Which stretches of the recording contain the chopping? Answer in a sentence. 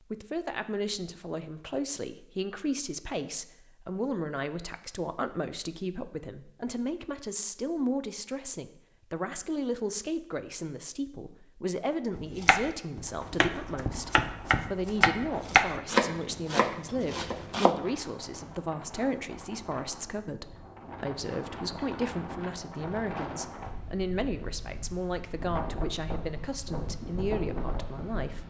The chopping can be heard from 12.2 to 17.8 s.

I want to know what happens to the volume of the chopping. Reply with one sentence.
The loudness of the chopping goes up, then down.